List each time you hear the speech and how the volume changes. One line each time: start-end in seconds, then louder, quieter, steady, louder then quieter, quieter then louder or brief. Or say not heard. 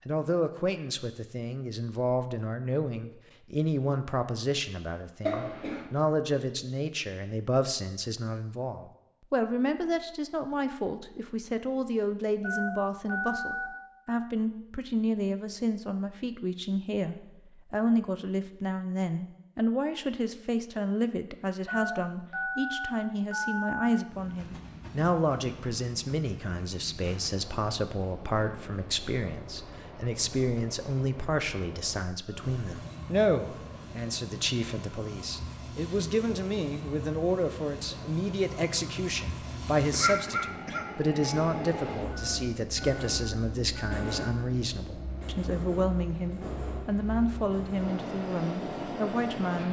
0.1-49.6 steady.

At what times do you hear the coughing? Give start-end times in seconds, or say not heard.
5.2-5.8, 39.9-41.4.